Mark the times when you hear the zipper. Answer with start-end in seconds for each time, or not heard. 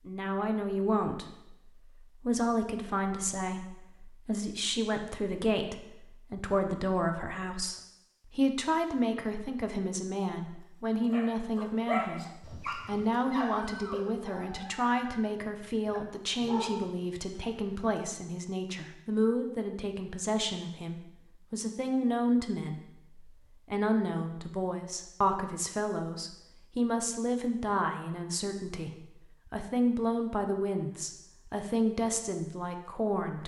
not heard.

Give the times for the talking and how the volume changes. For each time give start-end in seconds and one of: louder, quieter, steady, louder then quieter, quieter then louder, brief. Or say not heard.
0.1-33.4 steady.